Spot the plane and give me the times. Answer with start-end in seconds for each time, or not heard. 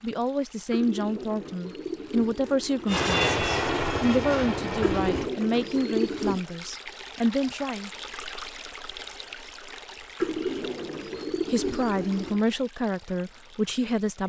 2.9-5.3.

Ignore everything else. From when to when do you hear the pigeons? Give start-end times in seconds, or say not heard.
0.7-3.0, 4.8-6.5, 10.2-12.4.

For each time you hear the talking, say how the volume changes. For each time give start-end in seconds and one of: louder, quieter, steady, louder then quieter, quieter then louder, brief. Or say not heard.
0.0-7.9 steady
11.4-14.2 brief.